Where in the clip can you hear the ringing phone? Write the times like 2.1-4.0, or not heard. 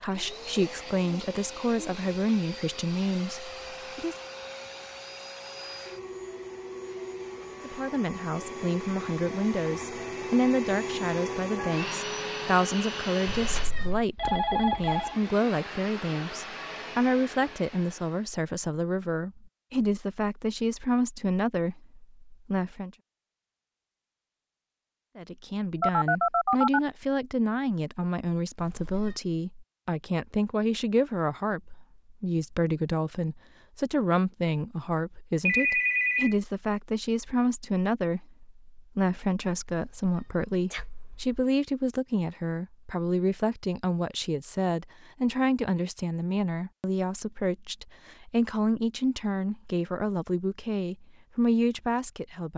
14.2-15.2, 25.8-26.8, 35.5-36.4.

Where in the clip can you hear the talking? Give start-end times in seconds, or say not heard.
0.0-4.2, 7.6-22.9, 25.1-52.5.